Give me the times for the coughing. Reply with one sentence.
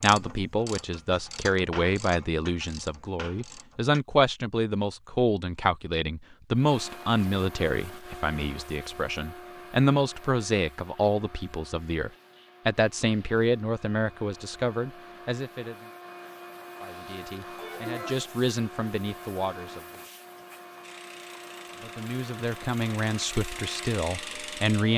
You can hear the coughing from 17.6 to 18.4 s.